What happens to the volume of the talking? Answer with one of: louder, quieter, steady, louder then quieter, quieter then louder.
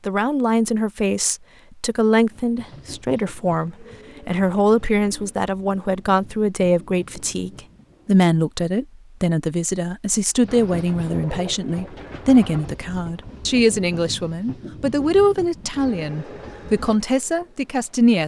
steady.